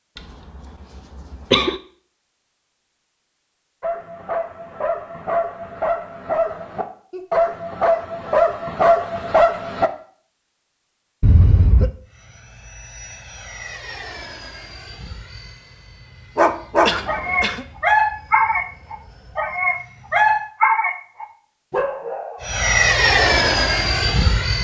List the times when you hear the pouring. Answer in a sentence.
The pouring can't be heard in this clip.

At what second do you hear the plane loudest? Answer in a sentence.
The volume of the plane peaks at 23 seconds.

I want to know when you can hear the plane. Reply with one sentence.
The plane can be heard from 12.1 to 20.5 s and from 22.4 to 24.5 s.